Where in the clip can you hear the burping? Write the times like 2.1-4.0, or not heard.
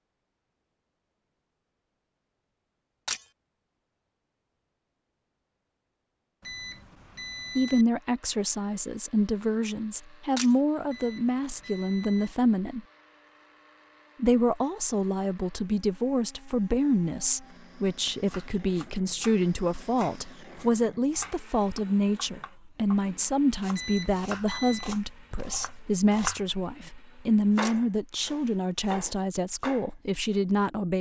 not heard.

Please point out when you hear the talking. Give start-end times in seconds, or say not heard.
7.5-12.8, 14.2-30.9.